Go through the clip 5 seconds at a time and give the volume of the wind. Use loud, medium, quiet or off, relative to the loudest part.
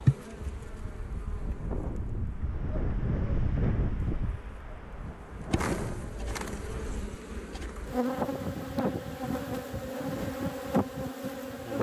loud, medium, off.